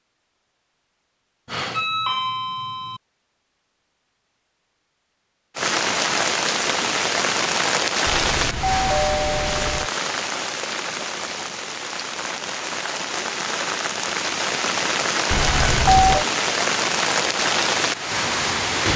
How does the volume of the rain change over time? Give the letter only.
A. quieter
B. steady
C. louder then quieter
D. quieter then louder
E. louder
D.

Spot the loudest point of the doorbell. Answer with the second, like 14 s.
16 s.